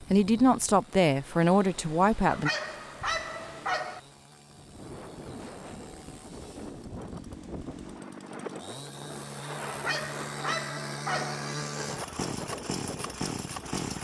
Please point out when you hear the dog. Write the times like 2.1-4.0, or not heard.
2.2-4.0, 9.7-11.4.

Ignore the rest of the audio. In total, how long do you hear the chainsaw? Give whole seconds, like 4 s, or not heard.
14 s.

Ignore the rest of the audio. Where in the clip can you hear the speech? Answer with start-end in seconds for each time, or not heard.
0.1-2.5.